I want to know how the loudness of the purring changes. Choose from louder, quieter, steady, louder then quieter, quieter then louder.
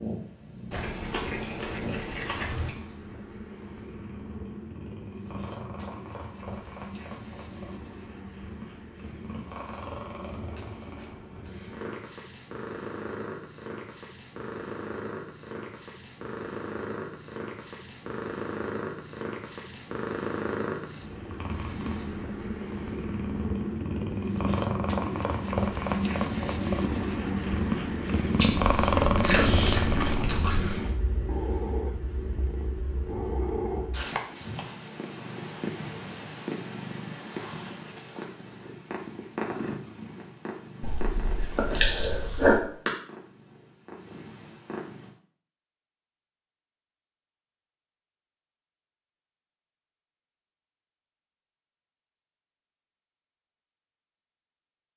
louder then quieter.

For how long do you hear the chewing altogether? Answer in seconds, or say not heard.
6 s.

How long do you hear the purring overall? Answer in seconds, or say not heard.
45 s.